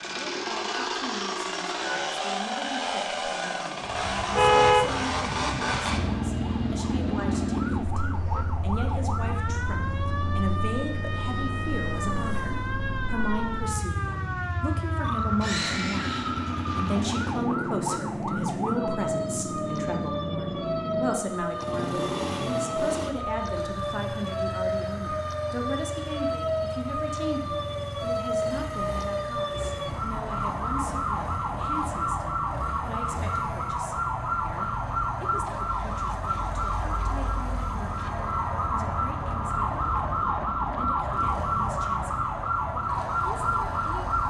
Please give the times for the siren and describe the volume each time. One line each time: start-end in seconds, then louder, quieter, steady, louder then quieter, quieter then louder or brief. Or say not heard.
3.8-44.2 louder.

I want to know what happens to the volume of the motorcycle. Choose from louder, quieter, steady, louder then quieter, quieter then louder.
quieter.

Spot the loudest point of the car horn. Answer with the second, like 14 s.
5 s.